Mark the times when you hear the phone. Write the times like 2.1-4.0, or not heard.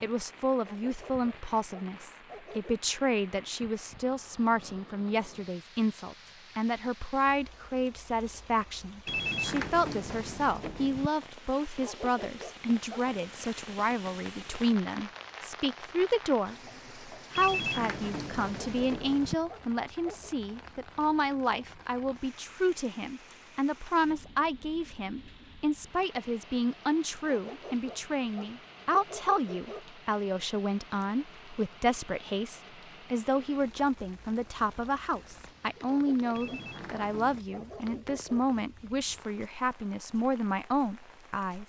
9.1-11.1, 17.4-19.4, 36.4-37.4.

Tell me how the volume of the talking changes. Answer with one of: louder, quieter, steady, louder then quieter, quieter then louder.
steady.